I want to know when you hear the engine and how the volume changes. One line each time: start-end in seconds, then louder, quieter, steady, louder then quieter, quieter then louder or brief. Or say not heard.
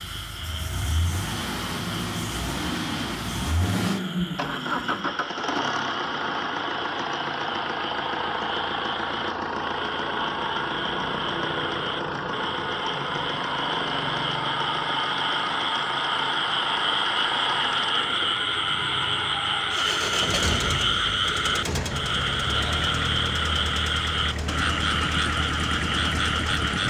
0.0-26.8 steady.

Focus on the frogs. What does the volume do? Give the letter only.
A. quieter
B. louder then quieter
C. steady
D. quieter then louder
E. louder
E.